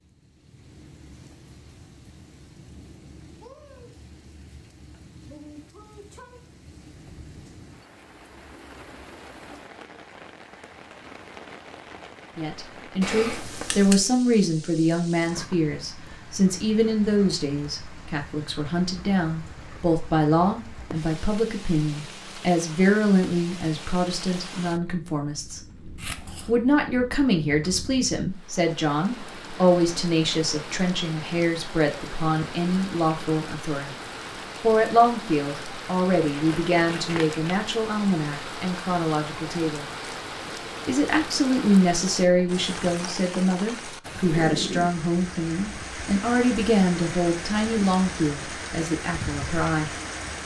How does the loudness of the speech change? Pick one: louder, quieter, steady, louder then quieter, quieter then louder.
steady.